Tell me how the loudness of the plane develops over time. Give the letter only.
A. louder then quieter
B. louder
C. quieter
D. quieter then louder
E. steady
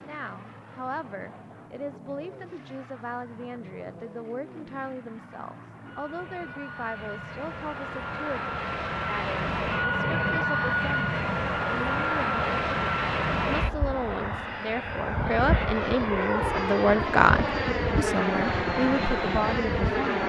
B.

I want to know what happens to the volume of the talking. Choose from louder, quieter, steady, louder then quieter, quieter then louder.
louder.